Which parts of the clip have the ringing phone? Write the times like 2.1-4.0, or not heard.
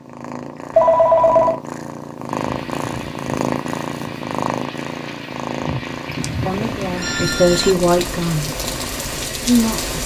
0.8-1.6, 6.2-7.8.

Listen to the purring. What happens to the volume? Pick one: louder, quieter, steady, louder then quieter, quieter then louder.
louder then quieter.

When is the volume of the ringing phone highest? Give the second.
1 s.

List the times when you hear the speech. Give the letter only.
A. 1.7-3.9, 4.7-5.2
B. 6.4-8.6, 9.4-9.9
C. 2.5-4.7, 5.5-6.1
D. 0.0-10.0
B.